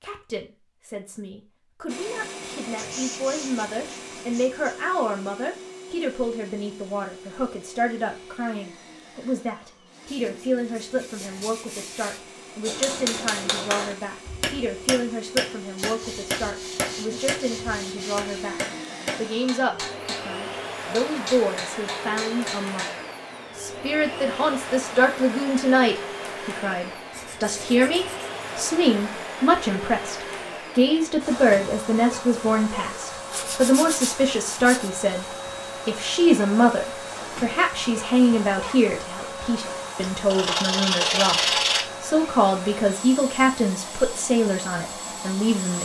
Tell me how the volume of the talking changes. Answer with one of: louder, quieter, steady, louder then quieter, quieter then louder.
louder.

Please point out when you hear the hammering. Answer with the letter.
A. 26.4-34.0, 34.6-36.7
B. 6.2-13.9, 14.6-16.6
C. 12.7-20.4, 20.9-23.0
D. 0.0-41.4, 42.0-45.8
C.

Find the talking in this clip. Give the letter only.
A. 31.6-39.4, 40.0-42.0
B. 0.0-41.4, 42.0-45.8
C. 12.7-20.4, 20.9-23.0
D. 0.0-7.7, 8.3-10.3
B.